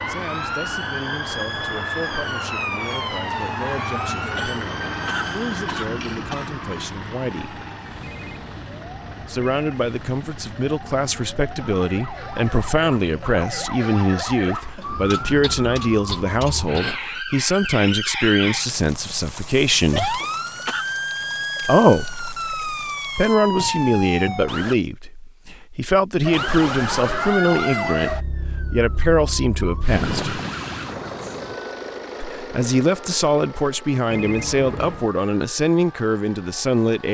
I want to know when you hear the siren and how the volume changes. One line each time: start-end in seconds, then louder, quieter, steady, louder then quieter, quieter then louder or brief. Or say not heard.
0.0-24.8 quieter then louder
26.2-37.0 quieter.